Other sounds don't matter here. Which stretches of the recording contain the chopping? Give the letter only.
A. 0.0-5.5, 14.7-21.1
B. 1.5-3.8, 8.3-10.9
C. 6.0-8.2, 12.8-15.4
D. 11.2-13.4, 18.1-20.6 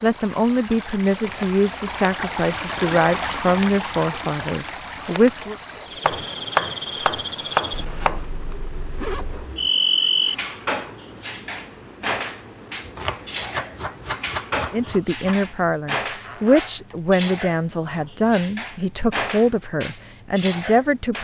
C.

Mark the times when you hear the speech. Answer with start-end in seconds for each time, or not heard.
0.0-5.5, 14.7-21.1.